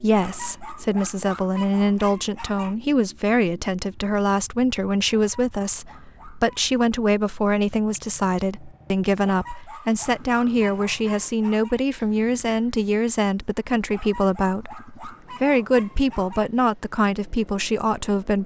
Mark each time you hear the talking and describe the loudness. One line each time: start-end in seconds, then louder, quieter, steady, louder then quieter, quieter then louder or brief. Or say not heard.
0.0-18.4 steady.